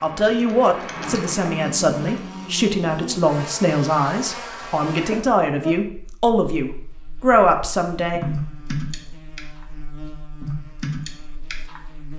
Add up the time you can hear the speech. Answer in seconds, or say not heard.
8 s.